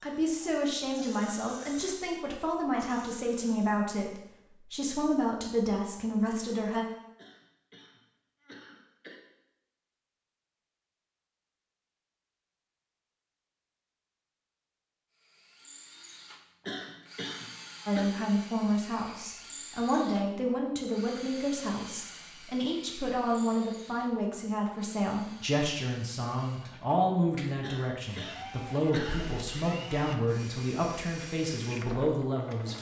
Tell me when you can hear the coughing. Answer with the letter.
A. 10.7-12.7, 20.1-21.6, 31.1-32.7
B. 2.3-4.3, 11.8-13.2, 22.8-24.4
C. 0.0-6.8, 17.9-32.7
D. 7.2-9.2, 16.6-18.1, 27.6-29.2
D.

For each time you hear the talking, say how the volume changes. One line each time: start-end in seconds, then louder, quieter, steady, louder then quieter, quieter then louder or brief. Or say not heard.
0.0-6.8 steady
17.9-32.7 steady.